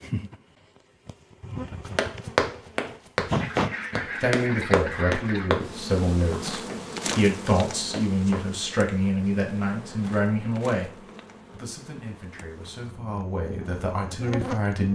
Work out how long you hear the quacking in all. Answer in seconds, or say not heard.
2 s.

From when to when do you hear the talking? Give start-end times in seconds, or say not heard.
4.2-14.8.